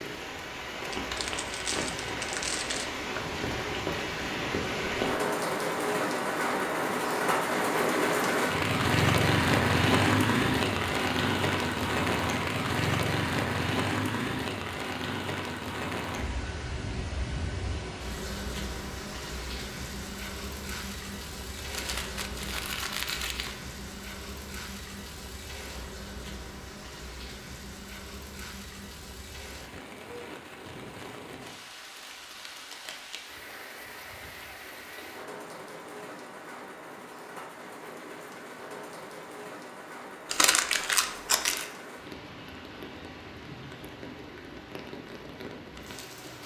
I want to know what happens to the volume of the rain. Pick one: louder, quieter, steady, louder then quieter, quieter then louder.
quieter.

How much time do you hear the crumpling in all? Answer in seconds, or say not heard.
5 s.